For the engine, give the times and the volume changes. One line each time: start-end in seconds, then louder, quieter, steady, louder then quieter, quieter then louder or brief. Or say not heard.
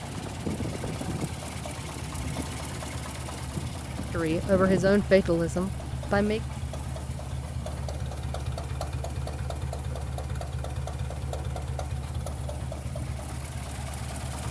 0.0-14.4 steady.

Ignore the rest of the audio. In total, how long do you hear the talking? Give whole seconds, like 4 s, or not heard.
2 s.